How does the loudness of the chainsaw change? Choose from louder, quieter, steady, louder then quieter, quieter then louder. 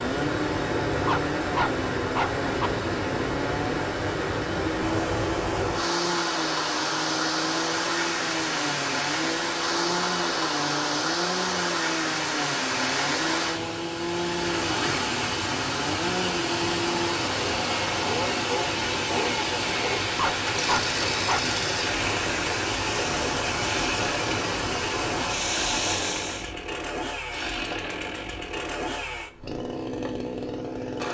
steady.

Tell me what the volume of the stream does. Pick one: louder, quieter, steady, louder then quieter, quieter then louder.
steady.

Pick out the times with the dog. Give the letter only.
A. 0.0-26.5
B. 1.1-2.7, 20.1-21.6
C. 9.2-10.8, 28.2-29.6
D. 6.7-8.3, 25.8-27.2
B.